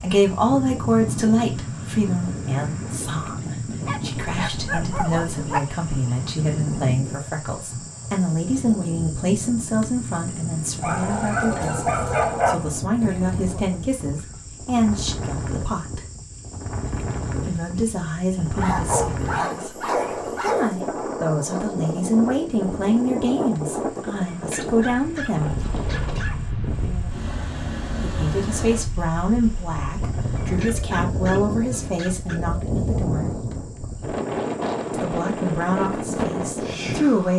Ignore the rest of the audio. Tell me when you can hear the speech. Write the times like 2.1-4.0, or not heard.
0.0-16.0, 17.4-25.6, 28.0-33.3, 34.9-37.3.